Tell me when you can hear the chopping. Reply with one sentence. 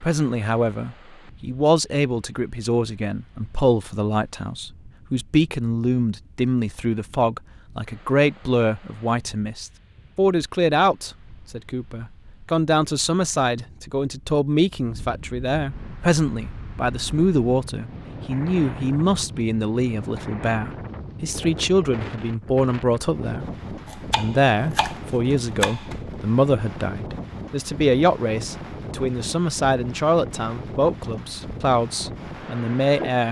The chopping can be heard from 23.9 to 26.0 s.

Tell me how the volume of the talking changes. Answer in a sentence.
The loudness of the talking stays about the same.